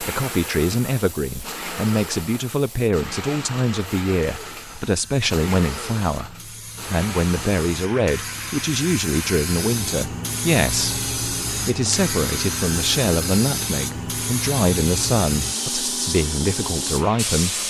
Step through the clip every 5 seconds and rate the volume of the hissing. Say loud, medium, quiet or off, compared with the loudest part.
quiet, medium, loud, loud.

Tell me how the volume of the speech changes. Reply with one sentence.
The loudness of the speech stays about the same.